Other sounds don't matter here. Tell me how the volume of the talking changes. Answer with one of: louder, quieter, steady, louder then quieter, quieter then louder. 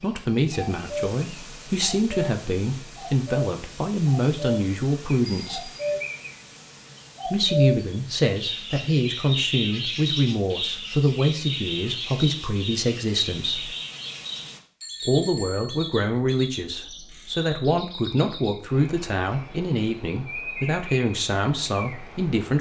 steady.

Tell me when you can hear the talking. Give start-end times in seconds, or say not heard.
0.0-5.7, 7.2-13.8, 15.1-22.5.